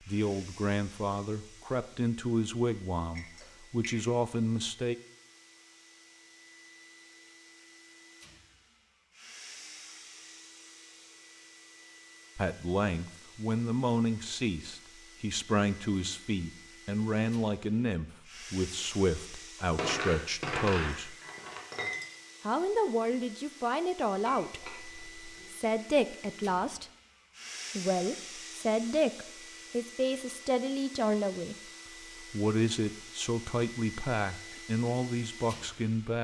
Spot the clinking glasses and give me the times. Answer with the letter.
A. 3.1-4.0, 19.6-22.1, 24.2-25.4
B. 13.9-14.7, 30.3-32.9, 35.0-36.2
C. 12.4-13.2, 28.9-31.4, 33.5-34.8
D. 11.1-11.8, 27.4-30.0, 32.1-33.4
A.